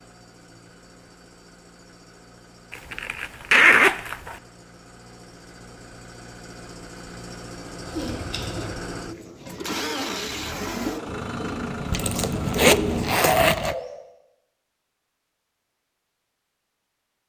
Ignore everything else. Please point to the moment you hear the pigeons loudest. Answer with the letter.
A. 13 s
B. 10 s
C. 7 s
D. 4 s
A.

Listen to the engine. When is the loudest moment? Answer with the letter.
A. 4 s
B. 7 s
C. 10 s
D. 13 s
C.